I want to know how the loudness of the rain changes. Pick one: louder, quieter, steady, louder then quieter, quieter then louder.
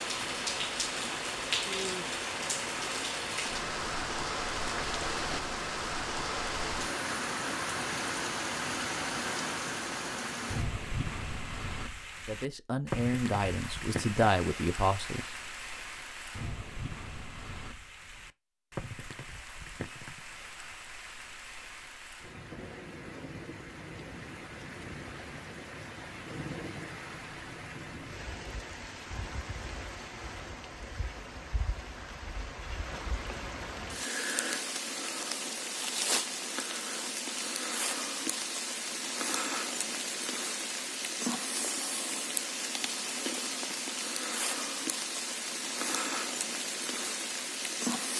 quieter then louder.